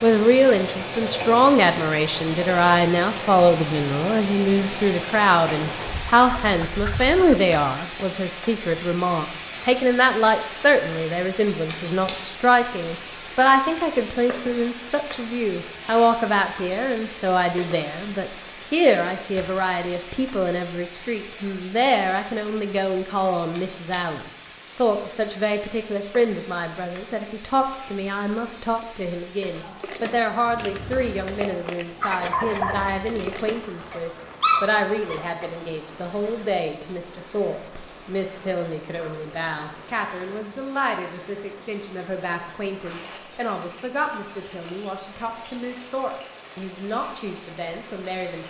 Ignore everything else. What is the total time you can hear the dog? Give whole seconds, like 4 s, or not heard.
6 s.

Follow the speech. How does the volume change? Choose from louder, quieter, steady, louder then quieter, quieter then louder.
quieter.